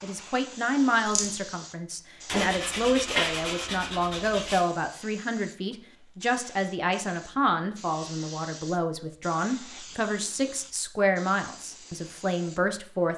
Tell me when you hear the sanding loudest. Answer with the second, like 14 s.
3 s.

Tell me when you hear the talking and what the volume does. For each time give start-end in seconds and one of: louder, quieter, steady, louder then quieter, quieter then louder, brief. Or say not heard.
0.0-13.1 steady.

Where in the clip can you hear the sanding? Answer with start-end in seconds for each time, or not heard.
2.2-4.7.